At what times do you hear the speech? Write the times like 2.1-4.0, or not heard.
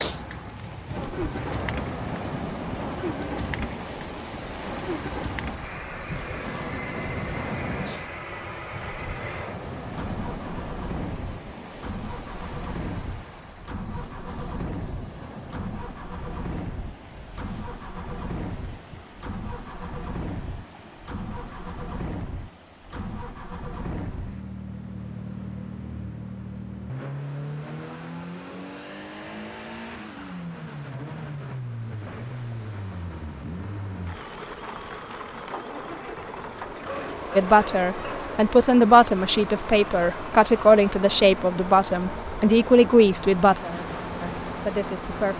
37.4-45.3.